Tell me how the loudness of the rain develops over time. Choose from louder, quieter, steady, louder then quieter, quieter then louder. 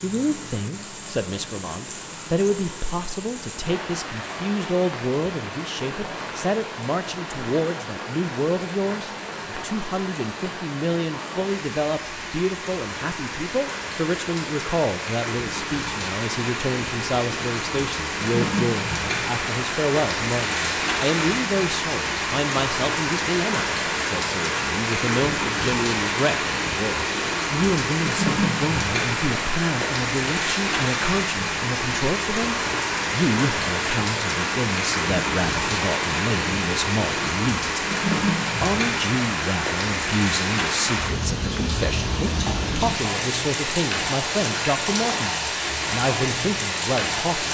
louder.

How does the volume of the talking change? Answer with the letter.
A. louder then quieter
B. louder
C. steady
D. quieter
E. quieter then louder
C.